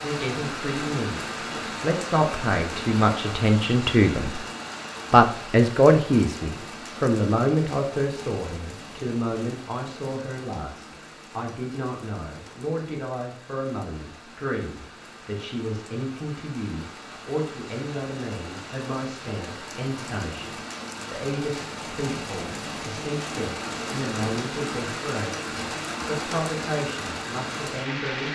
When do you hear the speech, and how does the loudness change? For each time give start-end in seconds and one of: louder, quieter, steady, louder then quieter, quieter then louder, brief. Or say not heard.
0.0-4.4 quieter then louder
5.1-28.3 quieter.